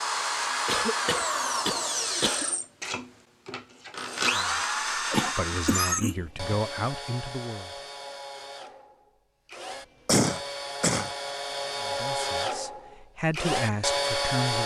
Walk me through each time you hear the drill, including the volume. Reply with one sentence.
The drill can be heard from 0.0 to 14.6 s, getting quieter then louder.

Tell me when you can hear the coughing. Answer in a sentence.
You can hear the coughing from 0.7 to 2.5 s, from 5.1 to 6.6 s and from 10.1 to 11.2 s.